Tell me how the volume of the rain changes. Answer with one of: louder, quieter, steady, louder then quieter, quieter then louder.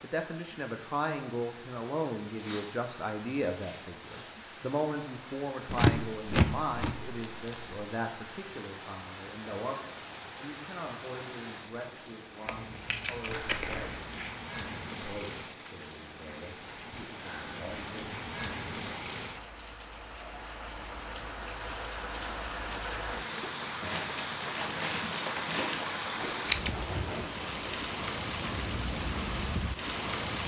louder.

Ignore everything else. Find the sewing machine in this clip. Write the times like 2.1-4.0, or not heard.
not heard.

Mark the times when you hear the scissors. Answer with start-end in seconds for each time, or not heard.
5.7-7.8, 12.4-14.3, 26.2-27.2.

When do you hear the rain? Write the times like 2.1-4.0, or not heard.
0.0-30.4.